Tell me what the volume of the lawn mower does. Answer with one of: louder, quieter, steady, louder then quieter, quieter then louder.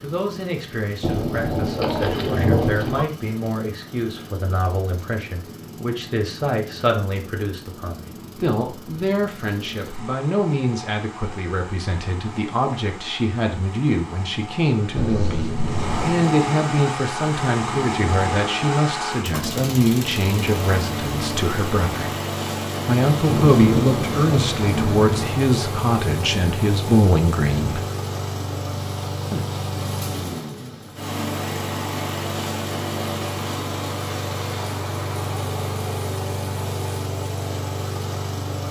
louder.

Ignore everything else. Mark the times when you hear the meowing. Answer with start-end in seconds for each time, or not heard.
14.9-16.1.